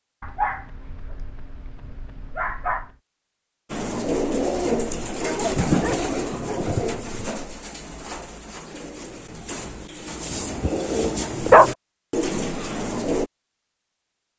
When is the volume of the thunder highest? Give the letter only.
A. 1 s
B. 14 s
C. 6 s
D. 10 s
C.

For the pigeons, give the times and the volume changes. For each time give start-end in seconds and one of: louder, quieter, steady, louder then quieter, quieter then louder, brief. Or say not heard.
3.7-13.3 quieter then louder.